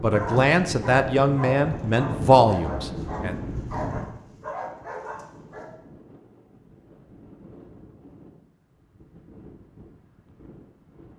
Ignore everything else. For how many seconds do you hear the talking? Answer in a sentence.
You can hear the talking for 3 seconds altogether.